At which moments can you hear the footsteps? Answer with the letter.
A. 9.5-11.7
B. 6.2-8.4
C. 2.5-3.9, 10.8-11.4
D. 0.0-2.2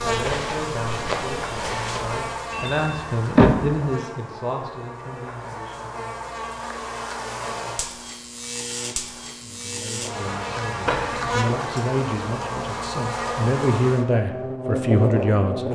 D.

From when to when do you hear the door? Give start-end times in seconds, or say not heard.
2.5-3.9, 10.8-11.4.